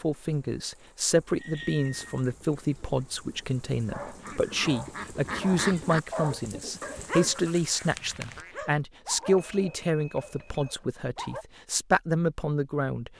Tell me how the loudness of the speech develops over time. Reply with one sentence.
The volume of the speech stays about the same.